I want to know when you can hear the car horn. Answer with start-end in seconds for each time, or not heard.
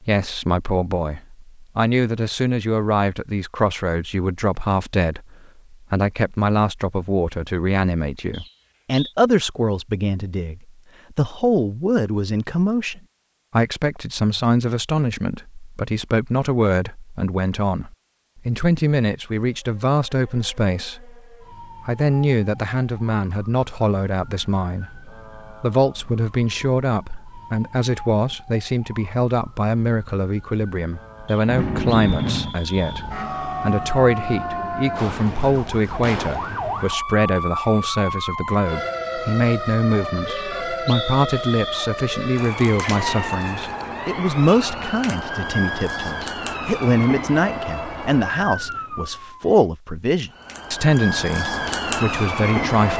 31.4-32.5.